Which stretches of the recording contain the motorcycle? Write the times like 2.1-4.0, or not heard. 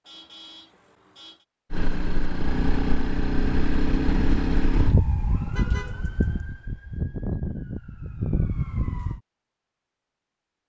1.7-5.0.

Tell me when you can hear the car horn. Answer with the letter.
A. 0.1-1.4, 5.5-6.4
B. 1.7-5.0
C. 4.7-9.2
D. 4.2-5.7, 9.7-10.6
A.